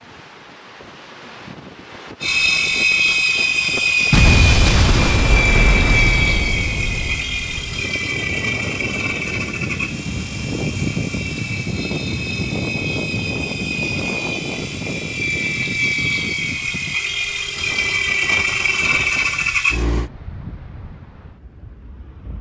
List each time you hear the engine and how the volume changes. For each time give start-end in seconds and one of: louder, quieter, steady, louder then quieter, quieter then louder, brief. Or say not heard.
2.2-20.1 quieter then louder.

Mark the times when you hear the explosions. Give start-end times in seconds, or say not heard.
4.1-7.2.